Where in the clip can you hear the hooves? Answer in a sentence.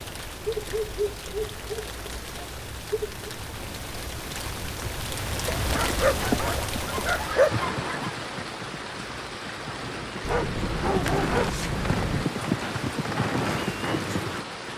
The hooves can be heard from 5.5 to 14.4 s.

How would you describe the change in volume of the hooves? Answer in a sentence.
The volume of the hooves goes down, then up.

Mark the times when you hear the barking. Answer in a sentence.
You can hear the barking from 0.5 to 3.2 s, from 5.5 to 8.1 s and from 10.2 to 12.2 s.